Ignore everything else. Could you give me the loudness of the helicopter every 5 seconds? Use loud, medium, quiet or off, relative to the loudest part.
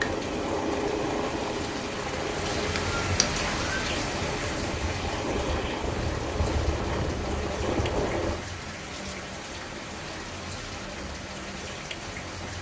loud, loud, off.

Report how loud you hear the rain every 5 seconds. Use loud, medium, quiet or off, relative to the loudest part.
loud, medium, medium.